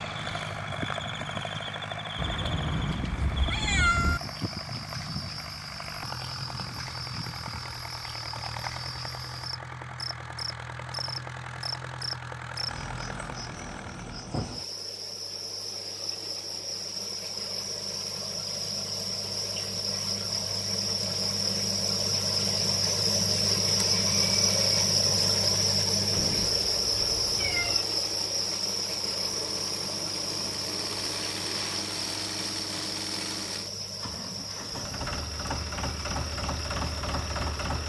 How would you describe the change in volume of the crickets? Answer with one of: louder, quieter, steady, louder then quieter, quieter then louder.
louder then quieter.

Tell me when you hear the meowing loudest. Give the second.
4 s.